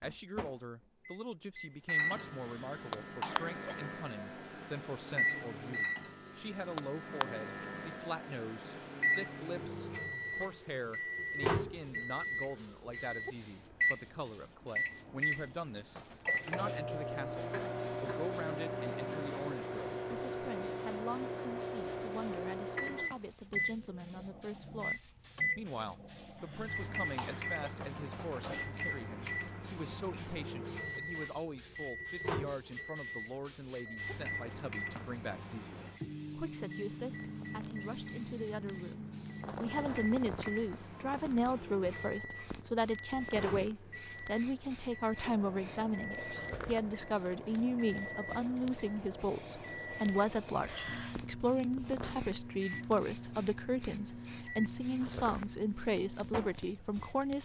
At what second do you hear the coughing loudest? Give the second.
3 s.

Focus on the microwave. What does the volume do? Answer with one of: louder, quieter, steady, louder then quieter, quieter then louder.
quieter.